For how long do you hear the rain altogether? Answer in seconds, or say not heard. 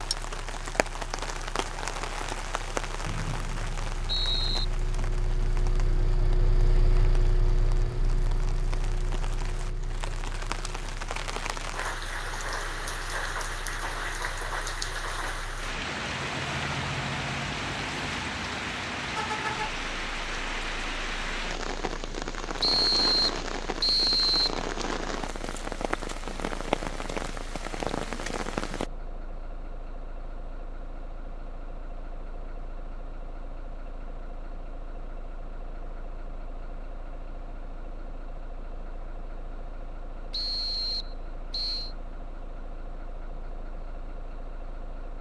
29 s.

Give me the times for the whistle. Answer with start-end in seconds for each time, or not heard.
3.0-4.7, 22.6-24.6, 40.3-42.0.